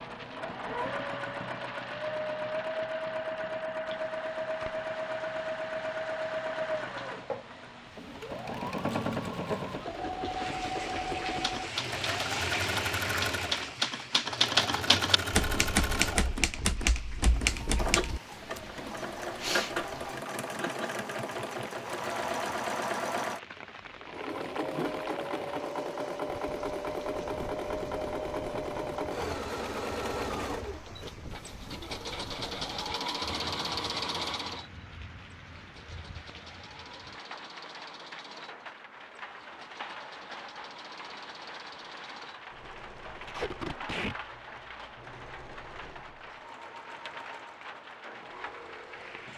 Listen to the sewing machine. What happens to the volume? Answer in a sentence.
The volume of the sewing machine goes down.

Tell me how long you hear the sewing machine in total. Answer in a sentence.
You can hear the sewing machine for 49 seconds altogether.